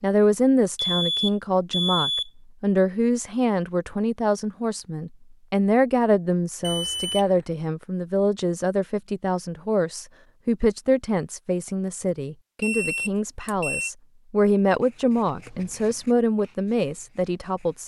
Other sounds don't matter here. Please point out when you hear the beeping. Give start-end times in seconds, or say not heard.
0.8-2.3, 6.6-7.4, 12.6-13.9.